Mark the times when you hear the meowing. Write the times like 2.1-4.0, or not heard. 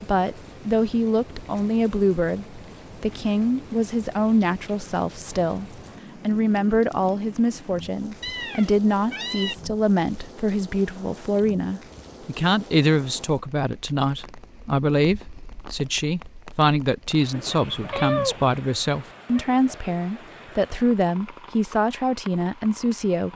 8.2-9.6, 17.3-18.5.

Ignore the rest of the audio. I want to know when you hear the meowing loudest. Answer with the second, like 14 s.
18 s.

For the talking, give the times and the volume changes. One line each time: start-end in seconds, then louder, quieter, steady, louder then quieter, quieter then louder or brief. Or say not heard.
0.0-23.3 steady.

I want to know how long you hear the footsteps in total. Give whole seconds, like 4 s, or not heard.
not heard.